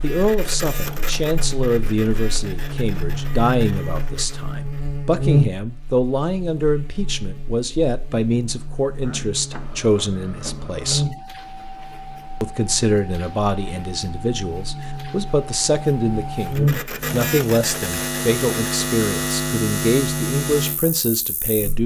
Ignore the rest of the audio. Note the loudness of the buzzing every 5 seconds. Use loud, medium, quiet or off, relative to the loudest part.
medium, loud, medium, loud, loud.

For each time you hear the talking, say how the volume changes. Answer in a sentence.
The talking can be heard from 0.0 to 11.2 s, at a steady volume; and from 12.4 to 21.8 s, at a steady volume.